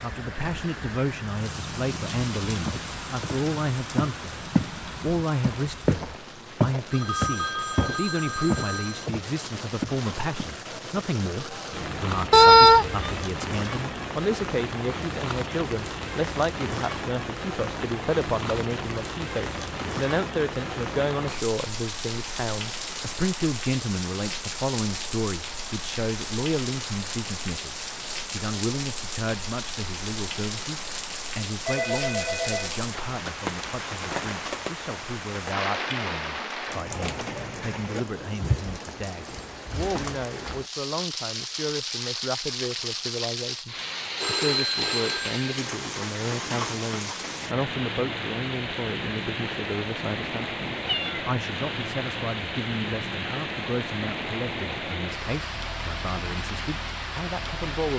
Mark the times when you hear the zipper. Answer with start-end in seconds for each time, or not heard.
not heard.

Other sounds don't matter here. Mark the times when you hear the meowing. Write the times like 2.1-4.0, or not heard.
12.3-13.2, 50.9-51.3.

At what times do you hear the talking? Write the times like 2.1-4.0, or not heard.
0.0-57.9.